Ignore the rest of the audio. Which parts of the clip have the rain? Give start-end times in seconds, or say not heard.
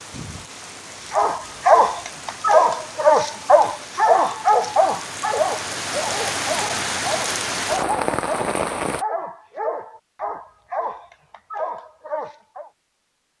0.0-9.1.